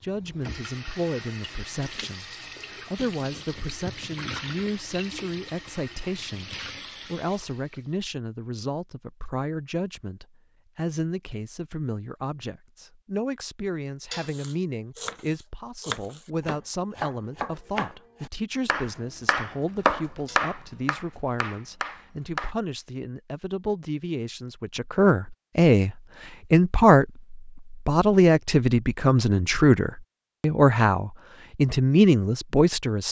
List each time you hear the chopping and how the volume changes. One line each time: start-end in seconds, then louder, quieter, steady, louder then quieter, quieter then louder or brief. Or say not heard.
14.2-22.6 louder then quieter.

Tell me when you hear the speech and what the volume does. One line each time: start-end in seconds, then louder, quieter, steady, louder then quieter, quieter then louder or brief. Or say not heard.
0.0-33.0 louder.